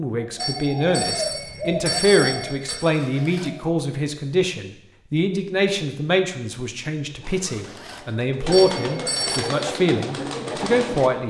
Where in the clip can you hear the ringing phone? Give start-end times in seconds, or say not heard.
0.3-2.8, 8.5-9.4.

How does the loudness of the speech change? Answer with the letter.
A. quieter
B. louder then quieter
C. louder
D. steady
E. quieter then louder
D.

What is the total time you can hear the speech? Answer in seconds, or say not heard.
11 s.